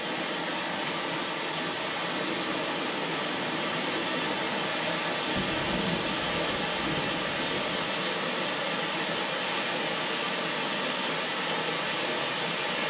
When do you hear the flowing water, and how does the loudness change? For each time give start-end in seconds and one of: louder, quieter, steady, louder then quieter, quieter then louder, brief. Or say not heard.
0.0-12.8 steady.